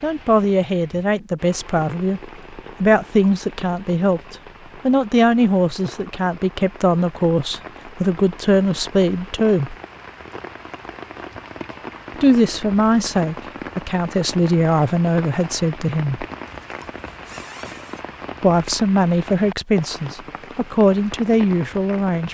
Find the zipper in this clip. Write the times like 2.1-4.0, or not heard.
16.4-18.1.